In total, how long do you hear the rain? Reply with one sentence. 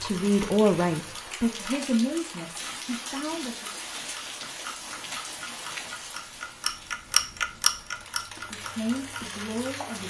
The rain can be heard for 10 seconds in total.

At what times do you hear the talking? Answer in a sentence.
You can hear the talking from 0.0 to 3.7 s and from 8.5 to 10.0 s.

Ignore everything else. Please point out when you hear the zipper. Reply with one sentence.
The zipper can't be heard in this clip.